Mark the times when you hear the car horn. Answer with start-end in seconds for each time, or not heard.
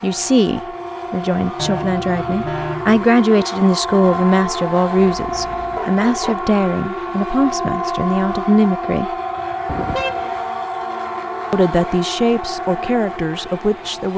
1.6-3.0, 5.0-6.5, 9.7-10.3.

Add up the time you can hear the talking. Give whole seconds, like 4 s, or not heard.
12 s.